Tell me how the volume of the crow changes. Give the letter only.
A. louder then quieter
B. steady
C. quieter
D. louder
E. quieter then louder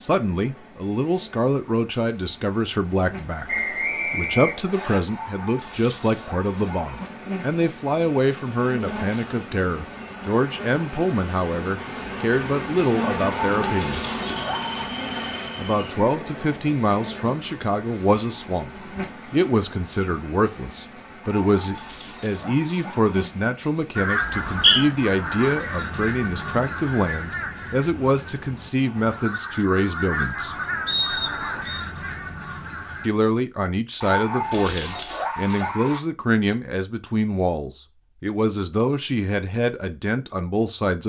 E.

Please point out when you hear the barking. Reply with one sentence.
The barking can be heard from 5.0 to 7.1 s, from 13.2 to 14.9 s, from 21.2 to 23.2 s and from 34.0 to 36.0 s.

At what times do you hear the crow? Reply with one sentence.
You can hear the crow from 23.9 to 33.1 s.